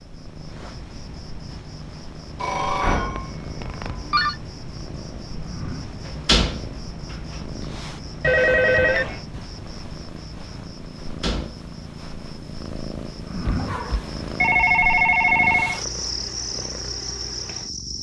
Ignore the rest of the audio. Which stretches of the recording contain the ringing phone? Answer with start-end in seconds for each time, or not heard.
2.4-4.3, 8.2-9.2, 13.4-15.8.